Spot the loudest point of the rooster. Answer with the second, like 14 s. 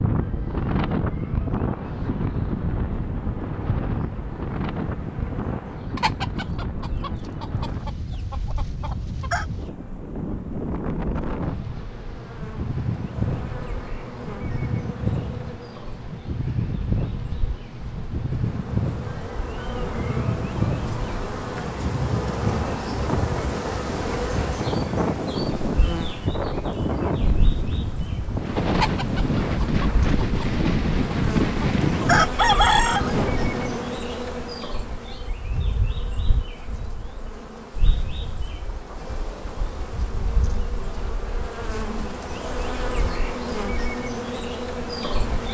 33 s.